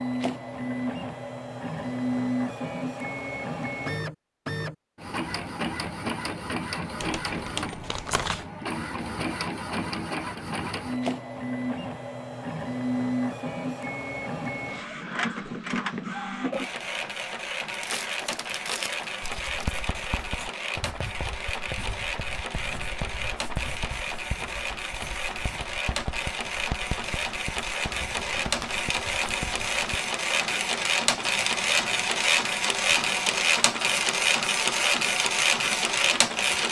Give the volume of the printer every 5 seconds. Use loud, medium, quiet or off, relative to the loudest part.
medium, medium, medium, medium, medium, medium, loud, loud.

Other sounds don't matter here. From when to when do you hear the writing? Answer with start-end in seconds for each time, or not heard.
19.2-30.0.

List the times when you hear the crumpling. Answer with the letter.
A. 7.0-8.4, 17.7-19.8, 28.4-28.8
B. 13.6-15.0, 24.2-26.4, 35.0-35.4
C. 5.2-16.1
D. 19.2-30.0
A.